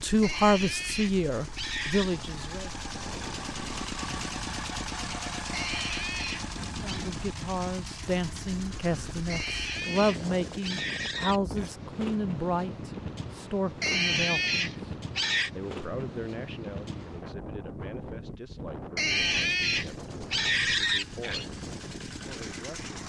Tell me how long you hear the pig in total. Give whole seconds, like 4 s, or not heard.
10 s.